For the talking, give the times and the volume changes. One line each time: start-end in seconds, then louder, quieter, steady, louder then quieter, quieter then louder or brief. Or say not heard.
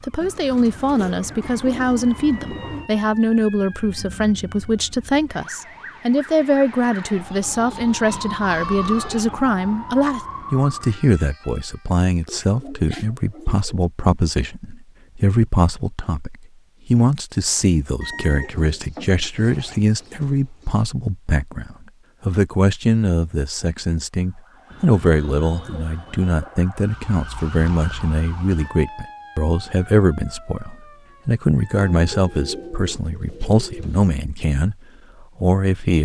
0.0-36.0 steady.